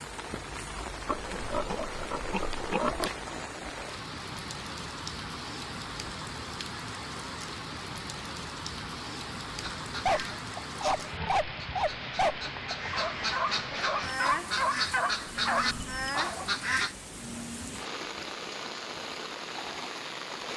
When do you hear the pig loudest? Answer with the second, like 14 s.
3 s.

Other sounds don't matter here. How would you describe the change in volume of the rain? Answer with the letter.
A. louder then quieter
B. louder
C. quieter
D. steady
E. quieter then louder
D.